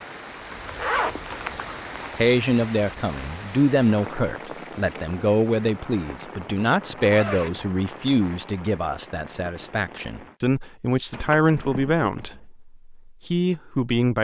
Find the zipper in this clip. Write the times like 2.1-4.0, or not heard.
0.5-2.2, 7.0-7.7, 11.1-12.4.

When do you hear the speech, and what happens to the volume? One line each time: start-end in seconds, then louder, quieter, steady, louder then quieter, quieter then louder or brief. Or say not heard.
2.1-14.1 steady.